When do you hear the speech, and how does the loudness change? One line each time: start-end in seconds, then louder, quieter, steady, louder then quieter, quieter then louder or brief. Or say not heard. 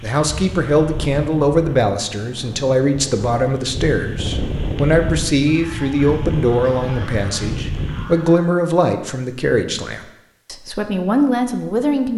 0.0-12.1 steady.